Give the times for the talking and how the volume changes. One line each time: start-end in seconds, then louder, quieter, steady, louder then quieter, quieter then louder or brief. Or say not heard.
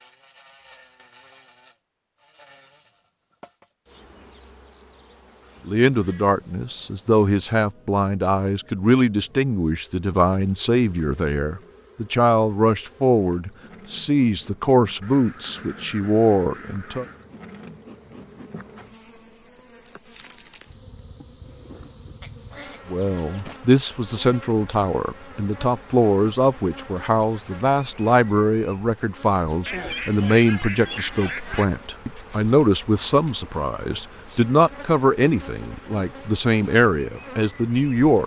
5.7-17.1 steady
22.9-38.2 steady.